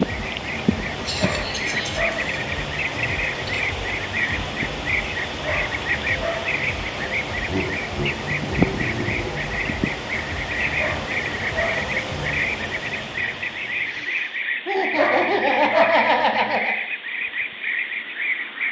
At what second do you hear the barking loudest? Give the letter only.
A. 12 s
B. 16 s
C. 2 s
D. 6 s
B.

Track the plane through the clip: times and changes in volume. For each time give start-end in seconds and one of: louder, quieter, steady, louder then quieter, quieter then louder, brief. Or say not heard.
not heard.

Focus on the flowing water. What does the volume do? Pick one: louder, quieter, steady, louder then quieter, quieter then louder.
steady.